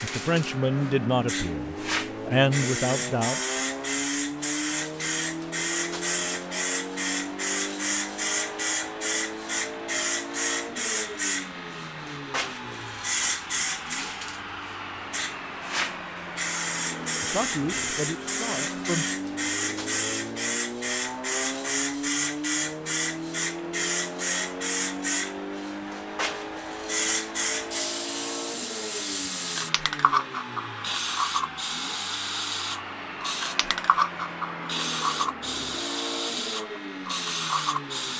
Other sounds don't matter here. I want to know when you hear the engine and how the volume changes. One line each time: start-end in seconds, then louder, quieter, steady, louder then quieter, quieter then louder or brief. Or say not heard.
0.0-38.1 steady.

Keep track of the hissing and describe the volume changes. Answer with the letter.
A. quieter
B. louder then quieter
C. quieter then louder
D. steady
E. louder
D.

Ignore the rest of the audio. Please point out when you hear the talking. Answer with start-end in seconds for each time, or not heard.
0.0-3.4, 17.2-19.1.